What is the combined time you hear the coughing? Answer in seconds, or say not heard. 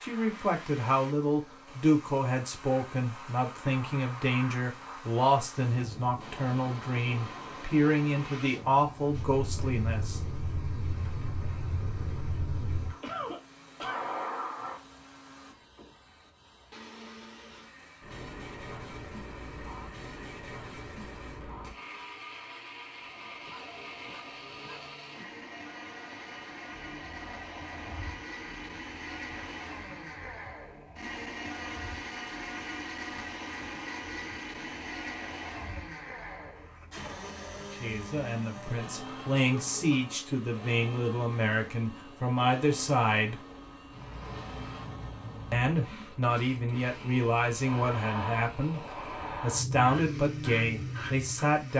4 s.